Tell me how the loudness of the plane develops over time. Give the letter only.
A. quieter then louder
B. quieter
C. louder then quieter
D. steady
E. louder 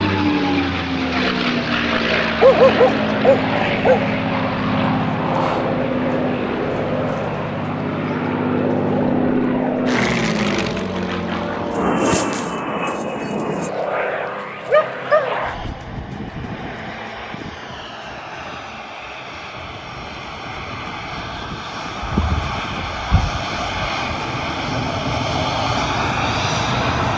A.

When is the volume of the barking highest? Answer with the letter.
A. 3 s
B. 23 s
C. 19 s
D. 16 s
A.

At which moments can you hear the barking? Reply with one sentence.
You can hear the barking from 2.4 to 4.0 s, from 14.7 to 15.4 s and from 22.0 to 23.9 s.